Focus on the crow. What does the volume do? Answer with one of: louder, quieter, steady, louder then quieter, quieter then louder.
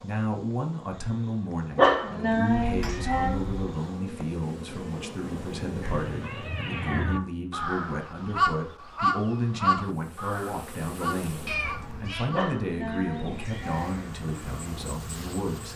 louder then quieter.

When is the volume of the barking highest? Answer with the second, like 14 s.
2 s.